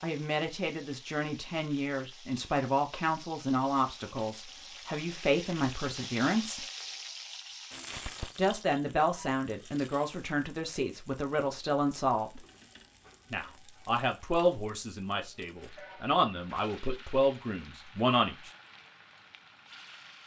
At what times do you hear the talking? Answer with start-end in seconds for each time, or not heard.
0.0-6.7, 8.3-12.4, 13.3-18.5.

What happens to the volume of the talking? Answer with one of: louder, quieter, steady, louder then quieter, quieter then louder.
steady.